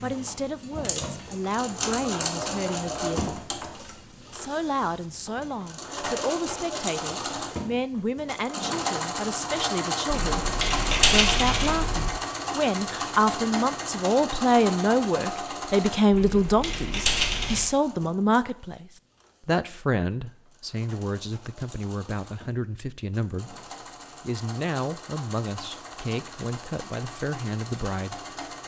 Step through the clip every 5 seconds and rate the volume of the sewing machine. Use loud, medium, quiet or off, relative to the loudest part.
loud, loud, loud, medium, quiet, medium.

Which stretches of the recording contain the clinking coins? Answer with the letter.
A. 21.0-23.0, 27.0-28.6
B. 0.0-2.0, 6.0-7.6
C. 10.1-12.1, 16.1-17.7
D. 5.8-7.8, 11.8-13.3
C.